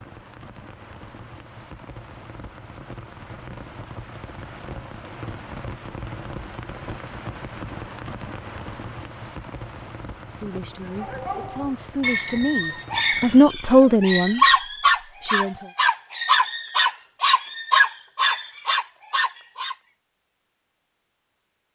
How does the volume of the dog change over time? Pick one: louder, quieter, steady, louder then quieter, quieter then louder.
louder.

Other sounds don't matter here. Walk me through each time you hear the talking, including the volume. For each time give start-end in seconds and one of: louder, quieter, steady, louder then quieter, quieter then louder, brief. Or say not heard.
10.4-14.4 louder
15.2-15.7 brief.